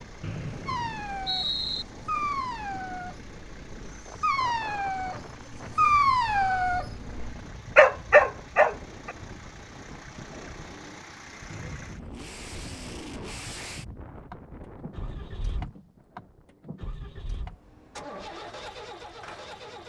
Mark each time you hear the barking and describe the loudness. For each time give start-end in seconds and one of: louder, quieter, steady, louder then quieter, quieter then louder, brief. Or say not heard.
0.7-9.2 quieter then louder.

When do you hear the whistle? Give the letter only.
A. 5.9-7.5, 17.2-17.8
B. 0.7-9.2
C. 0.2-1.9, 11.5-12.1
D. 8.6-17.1
C.